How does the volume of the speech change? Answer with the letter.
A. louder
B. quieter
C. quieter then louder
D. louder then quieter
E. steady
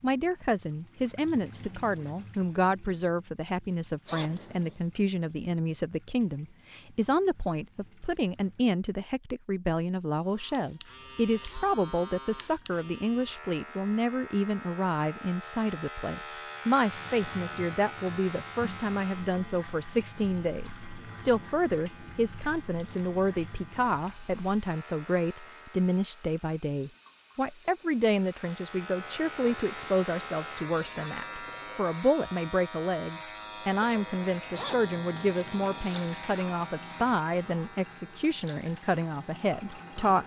E.